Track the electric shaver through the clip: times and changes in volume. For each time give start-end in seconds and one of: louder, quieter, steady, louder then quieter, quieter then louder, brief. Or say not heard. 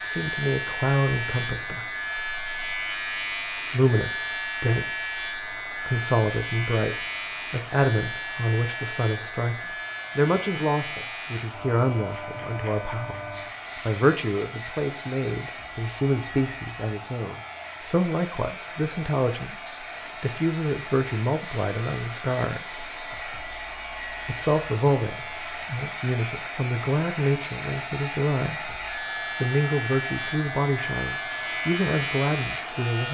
0.0-33.0 quieter then louder.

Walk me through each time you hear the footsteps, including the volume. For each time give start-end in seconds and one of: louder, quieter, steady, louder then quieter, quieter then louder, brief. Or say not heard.
not heard.